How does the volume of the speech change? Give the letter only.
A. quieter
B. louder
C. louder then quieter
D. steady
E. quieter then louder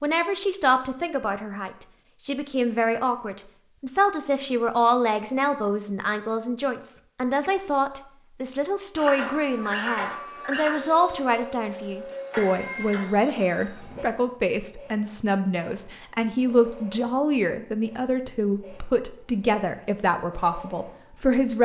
D.